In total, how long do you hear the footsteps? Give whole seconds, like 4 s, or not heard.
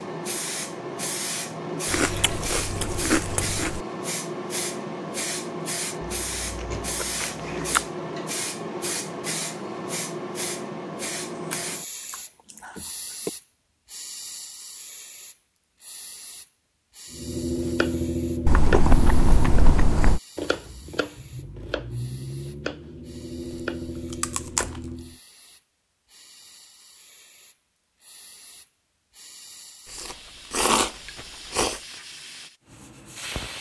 not heard.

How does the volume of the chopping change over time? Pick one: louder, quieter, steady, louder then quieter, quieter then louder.
quieter.